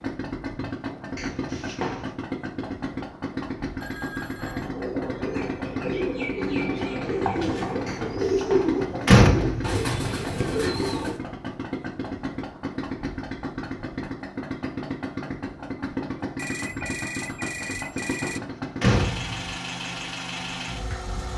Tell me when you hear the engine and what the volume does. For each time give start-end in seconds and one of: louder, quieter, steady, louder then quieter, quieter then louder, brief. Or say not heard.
0.0-21.3 steady.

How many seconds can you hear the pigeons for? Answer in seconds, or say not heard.
7 s.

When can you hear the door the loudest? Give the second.
9 s.